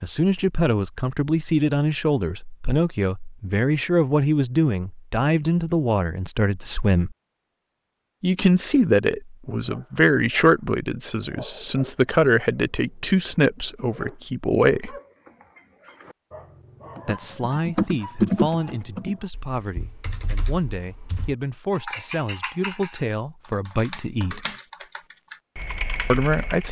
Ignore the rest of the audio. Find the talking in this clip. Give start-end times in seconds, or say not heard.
0.0-7.2, 8.2-14.9, 17.1-24.4, 26.1-26.6.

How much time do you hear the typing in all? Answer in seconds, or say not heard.
10 s.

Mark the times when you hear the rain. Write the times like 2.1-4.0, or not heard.
not heard.